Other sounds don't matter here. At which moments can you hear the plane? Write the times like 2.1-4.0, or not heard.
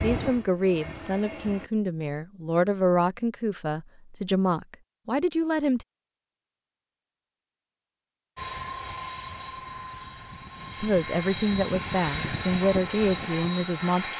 0.0-1.7, 8.3-14.1.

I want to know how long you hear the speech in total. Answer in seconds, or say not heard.
9 s.